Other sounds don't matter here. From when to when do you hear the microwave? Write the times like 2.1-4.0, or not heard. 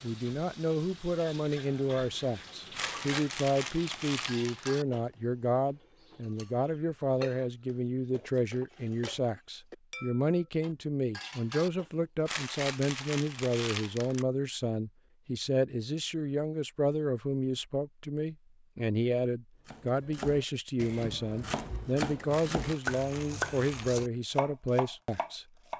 not heard.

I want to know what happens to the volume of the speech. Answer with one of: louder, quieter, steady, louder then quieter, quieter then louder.
steady.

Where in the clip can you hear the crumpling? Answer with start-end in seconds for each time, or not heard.
2.7-4.8, 12.2-14.2, 22.2-24.0.